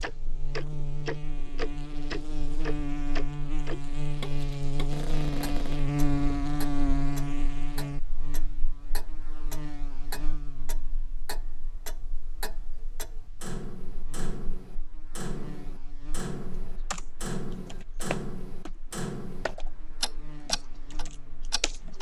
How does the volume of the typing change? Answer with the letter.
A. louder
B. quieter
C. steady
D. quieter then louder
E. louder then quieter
E.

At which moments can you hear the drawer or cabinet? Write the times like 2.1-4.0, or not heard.
4.9-5.8.